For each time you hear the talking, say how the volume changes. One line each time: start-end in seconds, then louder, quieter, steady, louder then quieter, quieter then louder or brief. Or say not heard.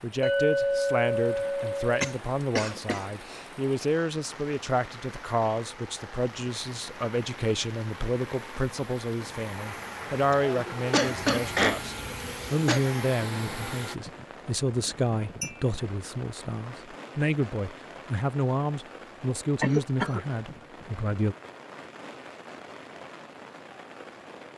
0.0-21.4 steady.